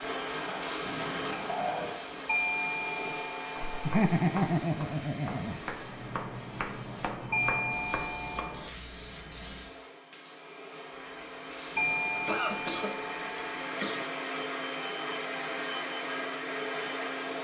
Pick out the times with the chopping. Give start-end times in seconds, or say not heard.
3.5-8.7.